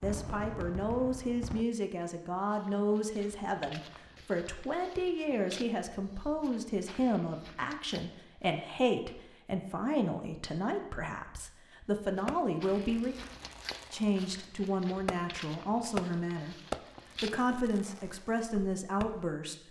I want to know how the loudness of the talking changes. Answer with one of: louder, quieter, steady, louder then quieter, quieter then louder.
steady.